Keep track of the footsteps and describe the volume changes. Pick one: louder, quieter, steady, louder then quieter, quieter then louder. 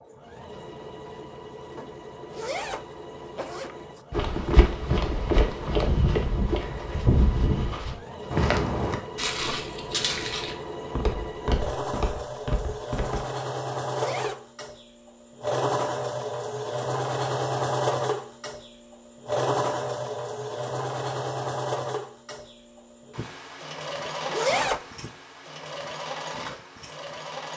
quieter.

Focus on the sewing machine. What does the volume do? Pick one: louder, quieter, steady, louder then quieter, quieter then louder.
louder then quieter.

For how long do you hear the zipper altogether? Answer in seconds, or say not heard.
3 s.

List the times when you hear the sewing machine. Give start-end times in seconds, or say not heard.
0.0-27.5.